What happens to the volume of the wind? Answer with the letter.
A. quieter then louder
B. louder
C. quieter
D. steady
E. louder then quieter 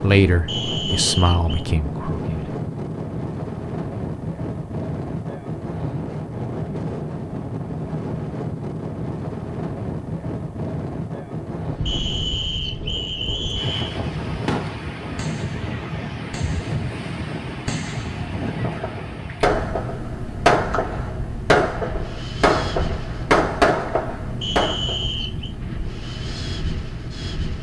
D.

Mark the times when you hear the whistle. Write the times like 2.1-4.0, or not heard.
0.5-1.6, 11.8-14.0, 24.4-25.5.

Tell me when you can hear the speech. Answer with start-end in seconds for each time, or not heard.
0.0-2.6.